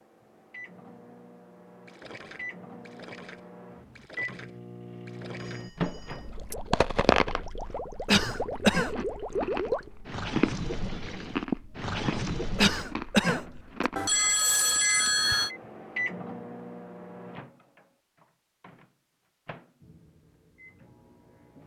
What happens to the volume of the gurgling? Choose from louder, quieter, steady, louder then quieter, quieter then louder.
louder.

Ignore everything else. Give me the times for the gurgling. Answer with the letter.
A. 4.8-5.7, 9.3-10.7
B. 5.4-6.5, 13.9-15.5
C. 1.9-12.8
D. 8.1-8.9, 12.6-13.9
C.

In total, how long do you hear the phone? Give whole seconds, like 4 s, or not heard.
3 s.